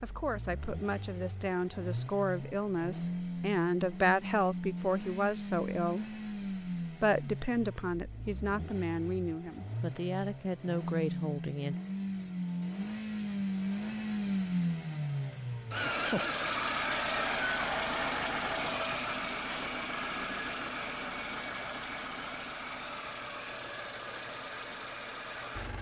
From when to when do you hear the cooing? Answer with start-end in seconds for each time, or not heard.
not heard.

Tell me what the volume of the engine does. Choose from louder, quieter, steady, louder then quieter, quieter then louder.
louder then quieter.